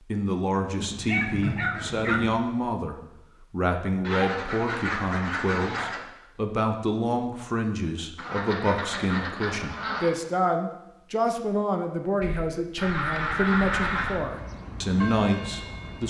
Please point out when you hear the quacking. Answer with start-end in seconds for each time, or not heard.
0.8-2.3, 4.0-6.0, 8.2-10.1, 12.2-14.2.